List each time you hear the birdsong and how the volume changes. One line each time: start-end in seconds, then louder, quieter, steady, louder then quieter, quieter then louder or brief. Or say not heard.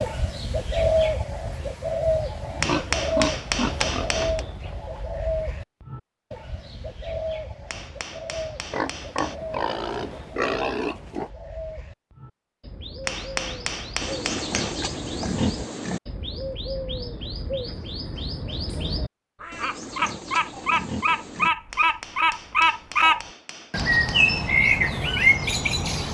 0.0-26.0 quieter then louder.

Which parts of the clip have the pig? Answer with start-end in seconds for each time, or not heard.
2.5-4.5, 8.7-11.3, 14.0-16.0, 19.5-21.5.